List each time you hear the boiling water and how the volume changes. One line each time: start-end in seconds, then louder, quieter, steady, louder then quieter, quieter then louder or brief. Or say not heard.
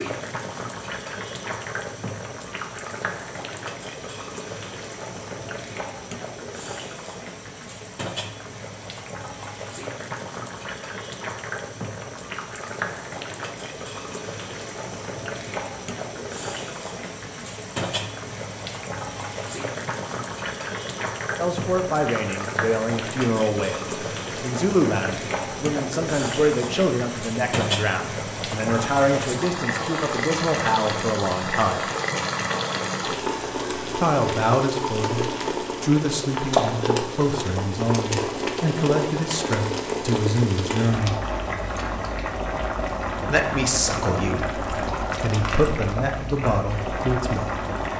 0.0-47.9 louder.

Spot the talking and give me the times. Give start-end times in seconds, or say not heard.
21.4-23.8, 24.4-31.9, 34.0-41.2, 43.2-47.5.